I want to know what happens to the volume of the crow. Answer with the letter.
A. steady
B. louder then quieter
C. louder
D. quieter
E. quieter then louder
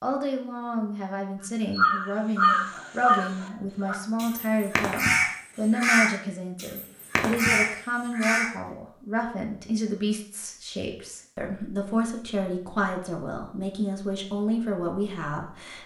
E.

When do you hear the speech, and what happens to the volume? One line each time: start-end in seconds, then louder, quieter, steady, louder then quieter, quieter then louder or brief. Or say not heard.
0.0-15.8 steady.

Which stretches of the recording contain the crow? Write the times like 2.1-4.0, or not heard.
1.7-8.8.